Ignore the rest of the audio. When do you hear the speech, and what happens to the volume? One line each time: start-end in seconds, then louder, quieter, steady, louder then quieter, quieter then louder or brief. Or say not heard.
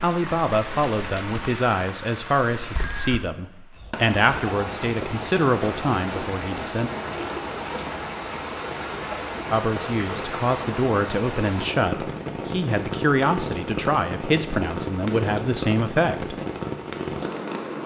0.0-6.9 steady
9.5-16.4 steady.